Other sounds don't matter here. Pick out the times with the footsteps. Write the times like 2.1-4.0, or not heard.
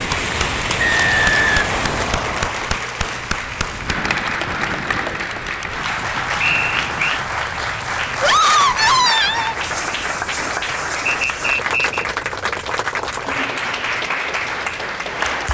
not heard.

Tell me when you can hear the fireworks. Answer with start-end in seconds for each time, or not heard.
0.0-2.1.